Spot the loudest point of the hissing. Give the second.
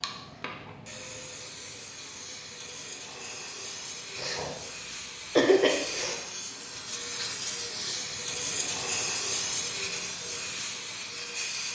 9 s.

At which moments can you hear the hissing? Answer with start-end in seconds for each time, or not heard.
0.0-11.7.